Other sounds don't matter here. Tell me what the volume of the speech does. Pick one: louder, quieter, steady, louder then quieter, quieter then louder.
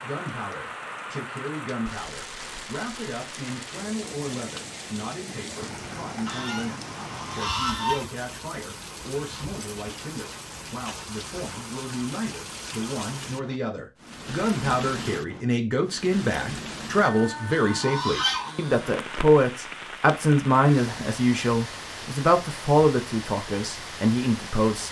louder.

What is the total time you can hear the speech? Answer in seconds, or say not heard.
25 s.